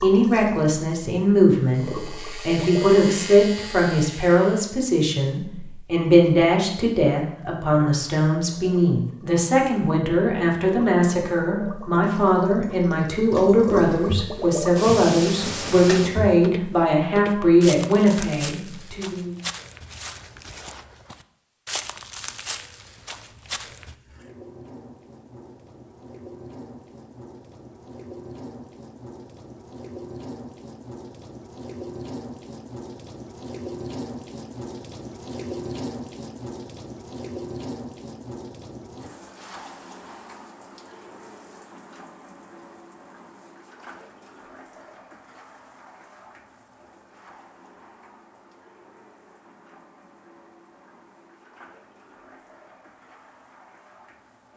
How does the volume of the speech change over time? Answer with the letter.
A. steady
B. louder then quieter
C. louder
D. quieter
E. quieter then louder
A.